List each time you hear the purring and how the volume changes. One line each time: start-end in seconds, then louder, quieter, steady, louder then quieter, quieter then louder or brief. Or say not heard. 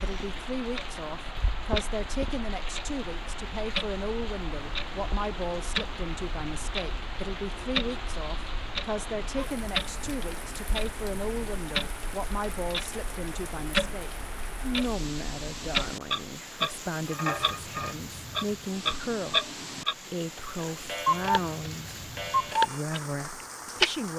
not heard.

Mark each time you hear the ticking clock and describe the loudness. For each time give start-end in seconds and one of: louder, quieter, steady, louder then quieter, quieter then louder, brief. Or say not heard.
0.0-23.9 louder.